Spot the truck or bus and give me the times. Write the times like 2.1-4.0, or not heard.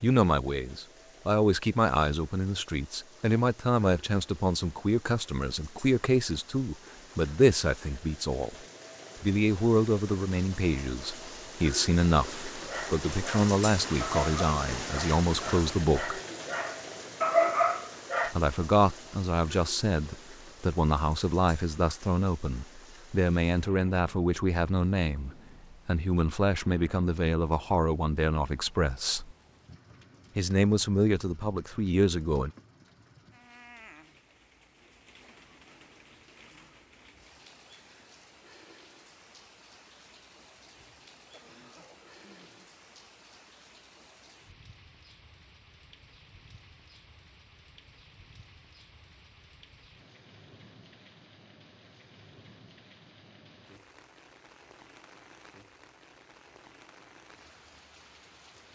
not heard.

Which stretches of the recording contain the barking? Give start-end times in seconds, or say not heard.
12.7-18.4.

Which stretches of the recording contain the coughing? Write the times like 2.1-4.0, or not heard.
40.8-42.7.